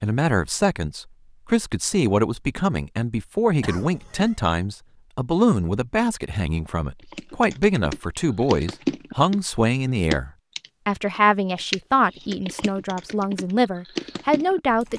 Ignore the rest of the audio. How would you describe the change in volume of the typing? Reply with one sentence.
The volume of the typing goes down, then up.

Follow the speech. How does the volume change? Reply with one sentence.
The loudness of the speech stays about the same.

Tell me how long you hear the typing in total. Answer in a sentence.
The typing can be heard for 8 seconds in total.